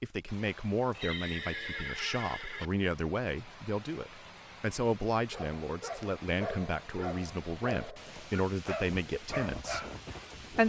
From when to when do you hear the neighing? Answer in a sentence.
You can hear the neighing from 0.9 to 2.7 s.